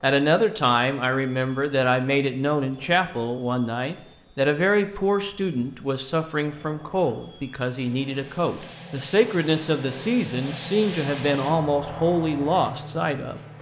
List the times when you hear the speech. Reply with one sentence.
The speech can be heard from 0.0 to 13.5 s.